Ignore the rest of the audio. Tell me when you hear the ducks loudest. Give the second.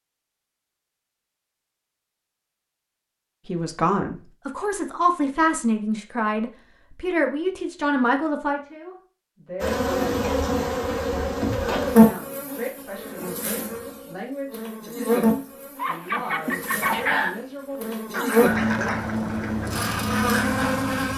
17 s.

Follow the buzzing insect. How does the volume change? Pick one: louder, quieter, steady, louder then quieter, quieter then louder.
quieter then louder.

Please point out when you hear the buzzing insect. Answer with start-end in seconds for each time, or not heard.
9.6-21.1.